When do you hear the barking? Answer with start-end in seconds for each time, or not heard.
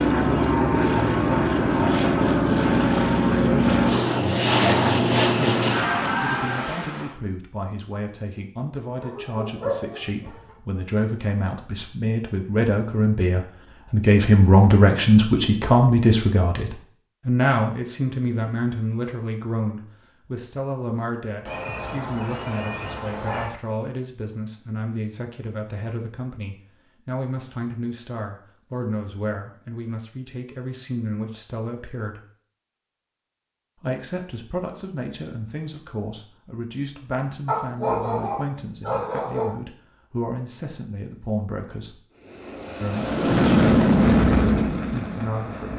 9.0-10.5, 21.4-23.5, 37.5-39.5.